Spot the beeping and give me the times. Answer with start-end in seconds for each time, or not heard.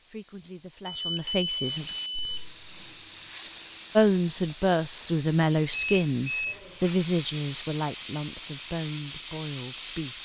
0.8-2.5, 5.7-6.6.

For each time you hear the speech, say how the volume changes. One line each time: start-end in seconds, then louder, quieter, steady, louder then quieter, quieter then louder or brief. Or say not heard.
0.1-1.9 brief
4.0-10.2 quieter.